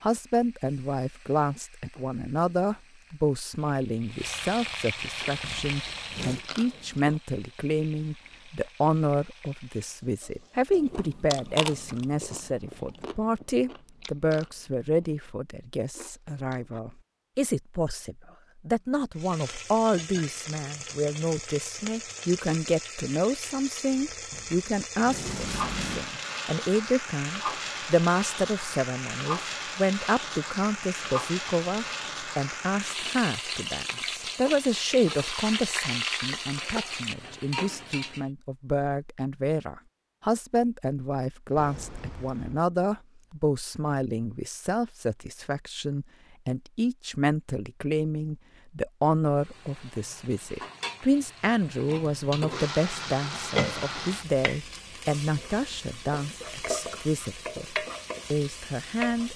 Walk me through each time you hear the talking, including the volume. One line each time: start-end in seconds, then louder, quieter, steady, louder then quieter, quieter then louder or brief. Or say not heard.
0.0-59.3 steady.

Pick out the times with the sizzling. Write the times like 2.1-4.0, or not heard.
0.0-10.8, 19.1-38.2, 49.4-59.3.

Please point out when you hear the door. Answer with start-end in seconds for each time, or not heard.
5.4-6.5, 24.3-26.1, 41.5-42.6.